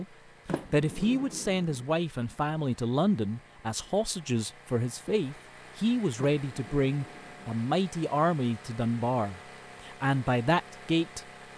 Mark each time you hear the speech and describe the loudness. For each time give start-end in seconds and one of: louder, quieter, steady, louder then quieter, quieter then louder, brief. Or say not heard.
0.0-11.2 steady.